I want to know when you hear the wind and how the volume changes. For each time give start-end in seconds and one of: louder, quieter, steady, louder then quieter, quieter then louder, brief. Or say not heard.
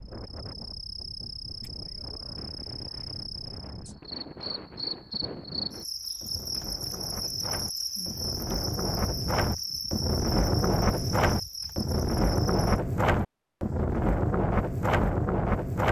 0.0-15.8 louder.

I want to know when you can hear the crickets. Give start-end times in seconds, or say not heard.
0.0-12.8.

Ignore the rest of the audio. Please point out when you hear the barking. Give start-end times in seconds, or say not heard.
not heard.